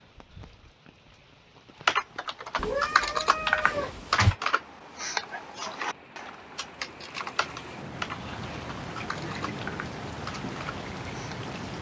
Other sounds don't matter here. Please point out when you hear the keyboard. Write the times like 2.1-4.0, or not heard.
1.9-11.4.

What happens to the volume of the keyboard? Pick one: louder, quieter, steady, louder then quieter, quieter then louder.
quieter.